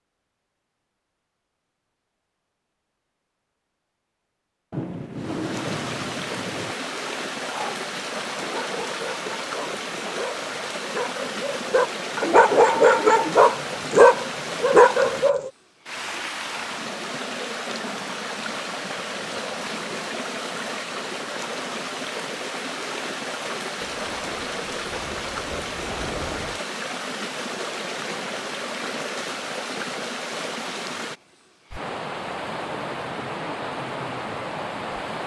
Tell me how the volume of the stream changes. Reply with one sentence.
The loudness of the stream stays about the same.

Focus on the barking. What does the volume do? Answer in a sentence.
The loudness of the barking goes up.